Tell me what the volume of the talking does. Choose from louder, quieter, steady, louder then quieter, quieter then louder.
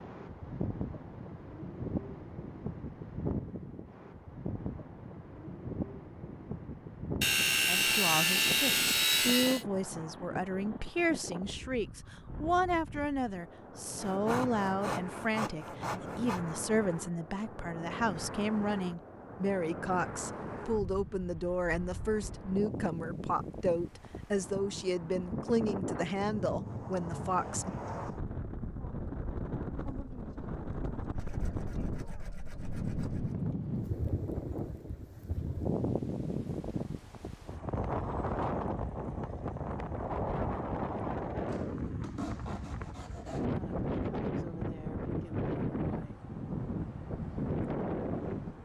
steady.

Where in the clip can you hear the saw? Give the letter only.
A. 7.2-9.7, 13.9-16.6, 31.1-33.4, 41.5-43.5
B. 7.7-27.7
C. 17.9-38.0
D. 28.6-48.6
A.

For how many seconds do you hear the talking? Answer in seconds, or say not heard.
20 s.